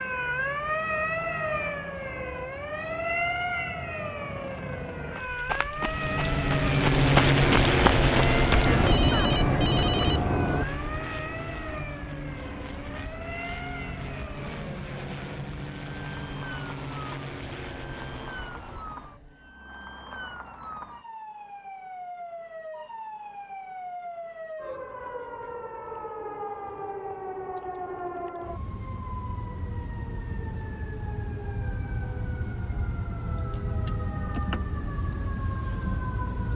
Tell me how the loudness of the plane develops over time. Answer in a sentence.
The loudness of the plane goes down.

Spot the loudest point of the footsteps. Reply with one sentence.
The loudest moment of the footsteps is at 7 seconds.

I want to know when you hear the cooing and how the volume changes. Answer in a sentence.
The cooing can't be heard in this clip.